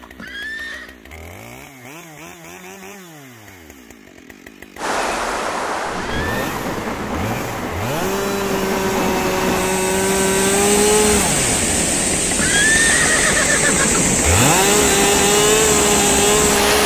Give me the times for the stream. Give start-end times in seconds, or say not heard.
4.8-16.8.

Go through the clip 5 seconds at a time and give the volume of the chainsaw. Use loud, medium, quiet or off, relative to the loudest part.
quiet, medium, loud, loud.